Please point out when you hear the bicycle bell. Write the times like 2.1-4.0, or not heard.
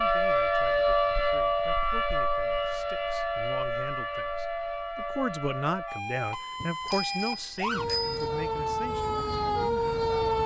6.6-8.3.